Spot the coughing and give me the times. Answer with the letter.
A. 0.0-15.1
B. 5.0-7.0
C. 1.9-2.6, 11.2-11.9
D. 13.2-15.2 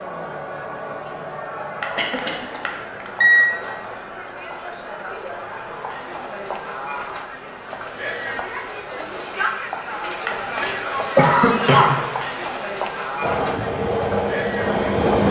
C.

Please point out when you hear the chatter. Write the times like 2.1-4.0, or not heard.
0.0-15.1.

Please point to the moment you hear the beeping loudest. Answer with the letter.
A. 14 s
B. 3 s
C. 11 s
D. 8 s
B.